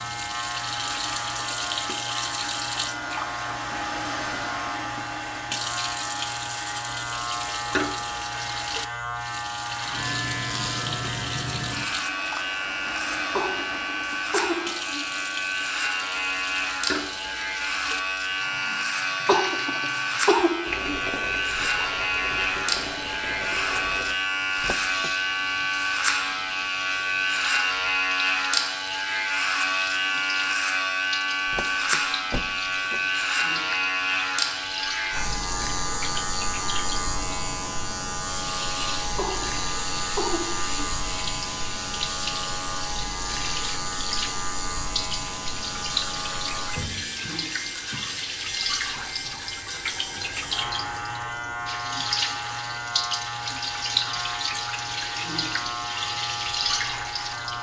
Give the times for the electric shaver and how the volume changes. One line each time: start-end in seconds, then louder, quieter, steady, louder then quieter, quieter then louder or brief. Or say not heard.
0.0-57.5 louder then quieter.